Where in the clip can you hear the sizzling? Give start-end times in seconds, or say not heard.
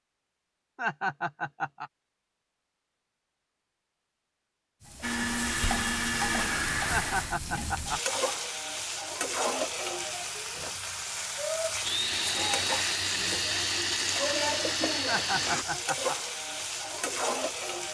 4.8-17.9.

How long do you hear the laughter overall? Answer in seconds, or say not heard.
4 s.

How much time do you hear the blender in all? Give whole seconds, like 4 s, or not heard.
6 s.